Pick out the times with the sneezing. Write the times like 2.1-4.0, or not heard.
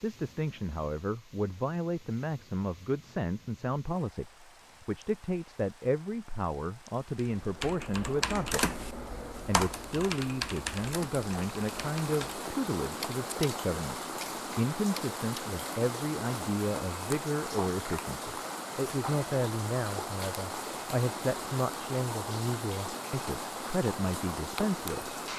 not heard.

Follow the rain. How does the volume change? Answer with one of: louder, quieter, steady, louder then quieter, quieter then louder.
louder.